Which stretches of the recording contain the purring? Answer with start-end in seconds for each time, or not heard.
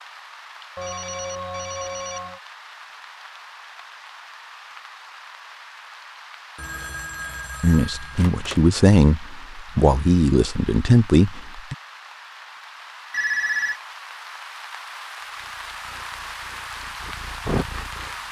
15.3-18.2.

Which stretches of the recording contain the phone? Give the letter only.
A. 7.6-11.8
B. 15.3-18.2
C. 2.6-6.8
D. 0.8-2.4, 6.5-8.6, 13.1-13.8
D.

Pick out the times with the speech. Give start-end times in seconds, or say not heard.
7.6-11.8.